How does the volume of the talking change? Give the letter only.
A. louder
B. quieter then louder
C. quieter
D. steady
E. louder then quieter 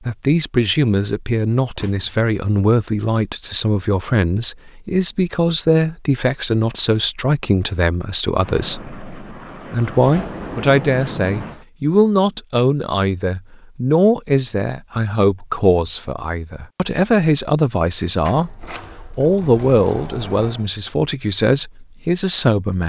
D.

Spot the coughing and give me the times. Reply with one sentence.
You can't hear the coughing here.